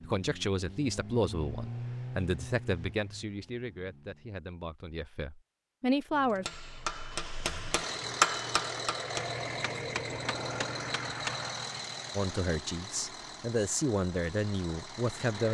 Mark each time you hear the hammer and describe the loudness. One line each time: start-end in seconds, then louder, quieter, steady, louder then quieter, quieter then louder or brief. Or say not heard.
6.1-11.4 louder then quieter.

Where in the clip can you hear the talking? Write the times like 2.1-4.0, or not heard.
0.0-6.5, 12.2-15.4.